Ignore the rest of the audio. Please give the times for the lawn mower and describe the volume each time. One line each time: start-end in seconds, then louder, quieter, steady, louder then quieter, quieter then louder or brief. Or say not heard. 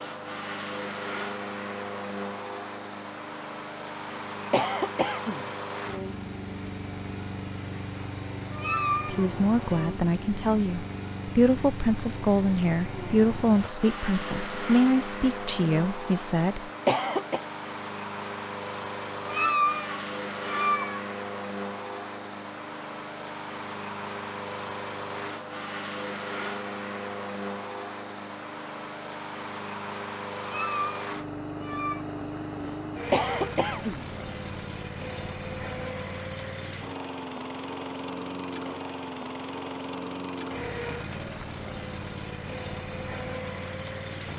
0.0-44.3 steady.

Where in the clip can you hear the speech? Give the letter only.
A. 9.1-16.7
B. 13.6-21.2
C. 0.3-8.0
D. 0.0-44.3
A.